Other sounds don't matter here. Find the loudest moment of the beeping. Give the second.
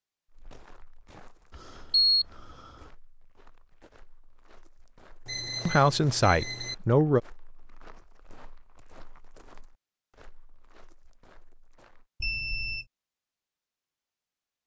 2 s.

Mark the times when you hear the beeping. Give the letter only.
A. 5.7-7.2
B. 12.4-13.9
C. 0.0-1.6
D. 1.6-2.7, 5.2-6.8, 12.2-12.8
D.